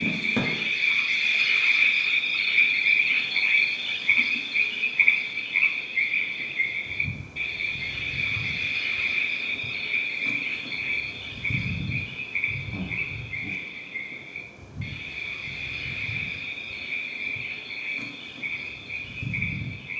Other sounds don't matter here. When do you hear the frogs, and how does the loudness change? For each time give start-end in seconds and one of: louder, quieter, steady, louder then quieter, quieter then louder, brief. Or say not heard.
0.0-19.9 quieter.